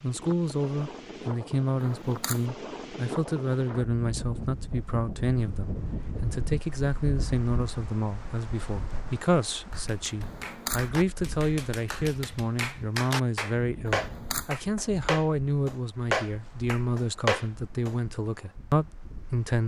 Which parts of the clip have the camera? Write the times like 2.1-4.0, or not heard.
1.8-2.5, 10.2-10.9, 13.8-14.6.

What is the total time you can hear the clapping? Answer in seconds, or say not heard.
8 s.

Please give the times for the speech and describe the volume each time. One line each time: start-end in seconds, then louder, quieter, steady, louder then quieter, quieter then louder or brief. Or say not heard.
0.0-19.6 steady.